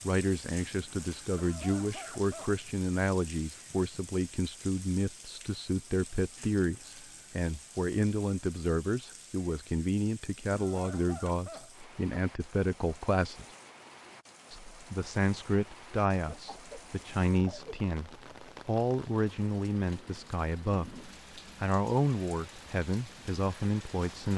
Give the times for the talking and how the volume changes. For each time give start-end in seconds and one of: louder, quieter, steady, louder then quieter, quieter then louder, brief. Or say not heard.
0.0-13.4 steady
14.5-24.3 steady.